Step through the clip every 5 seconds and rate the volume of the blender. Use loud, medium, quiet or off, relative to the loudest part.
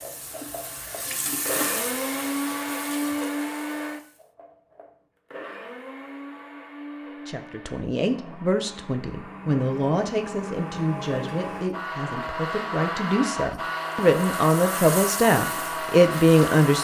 loud, medium, loud, loud.